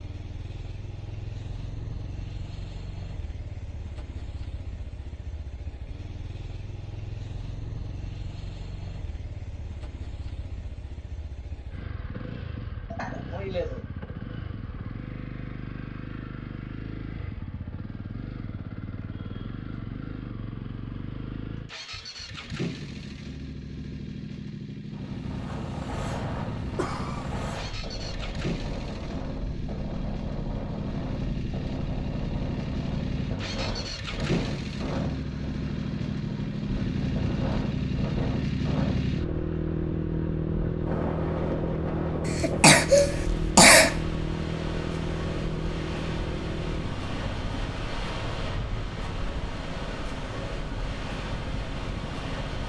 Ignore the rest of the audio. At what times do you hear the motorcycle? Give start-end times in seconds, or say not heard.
0.0-52.6.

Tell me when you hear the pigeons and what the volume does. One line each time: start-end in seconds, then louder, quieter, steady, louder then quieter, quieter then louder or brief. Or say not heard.
not heard.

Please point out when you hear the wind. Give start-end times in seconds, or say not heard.
24.9-52.6.